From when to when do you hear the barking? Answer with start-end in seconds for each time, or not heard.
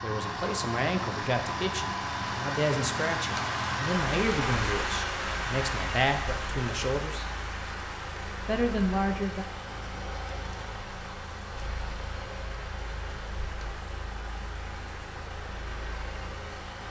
not heard.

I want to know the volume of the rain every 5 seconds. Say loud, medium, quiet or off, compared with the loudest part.
loud, loud, quiet, quiet.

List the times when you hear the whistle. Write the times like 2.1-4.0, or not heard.
not heard.